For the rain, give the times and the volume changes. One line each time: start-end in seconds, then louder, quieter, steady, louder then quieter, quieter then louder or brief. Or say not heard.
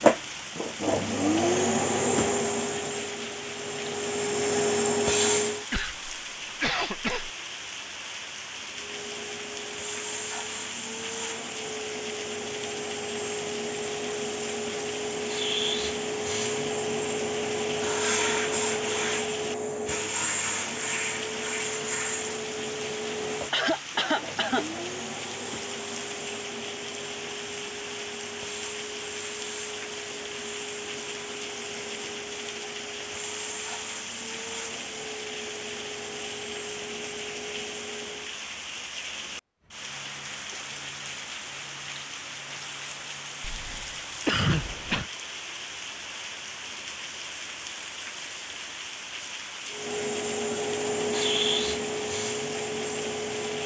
0.0-53.6 steady.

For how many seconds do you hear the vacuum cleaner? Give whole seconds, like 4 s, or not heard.
39 s.